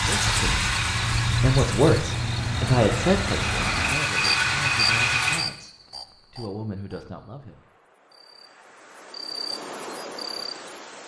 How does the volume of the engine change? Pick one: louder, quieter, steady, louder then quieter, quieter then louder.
quieter then louder.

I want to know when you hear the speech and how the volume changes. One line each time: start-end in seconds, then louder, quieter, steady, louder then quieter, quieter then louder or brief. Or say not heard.
0.0-0.7 brief
1.4-7.6 quieter.